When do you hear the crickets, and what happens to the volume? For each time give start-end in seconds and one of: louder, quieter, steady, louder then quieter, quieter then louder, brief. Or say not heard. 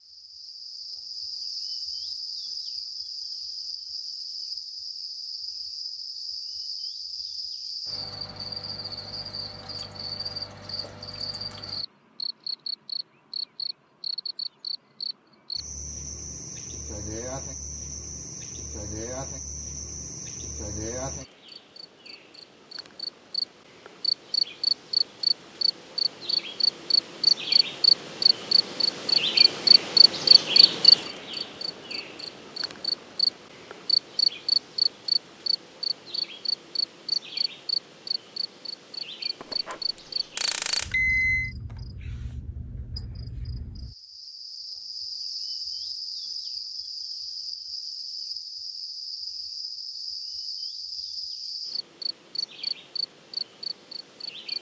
0.0-54.5 louder then quieter.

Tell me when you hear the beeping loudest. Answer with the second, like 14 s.
41 s.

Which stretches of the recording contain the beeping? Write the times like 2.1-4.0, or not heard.
39.4-41.5.